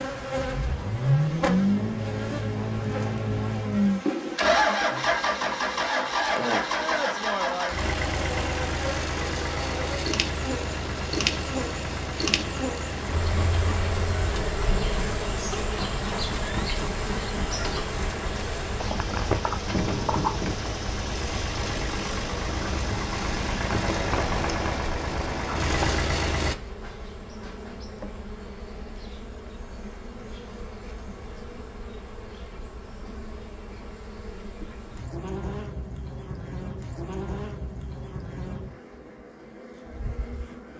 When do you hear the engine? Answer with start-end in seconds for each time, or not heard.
0.0-26.6.